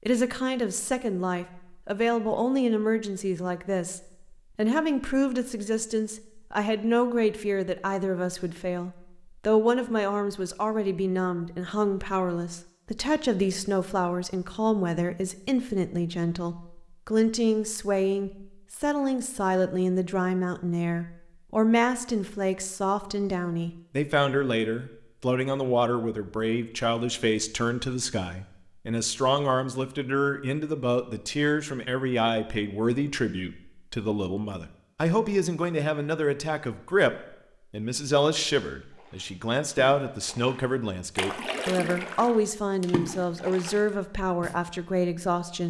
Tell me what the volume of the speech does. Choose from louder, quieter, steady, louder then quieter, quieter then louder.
steady.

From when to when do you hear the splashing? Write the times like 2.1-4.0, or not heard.
38.9-44.5.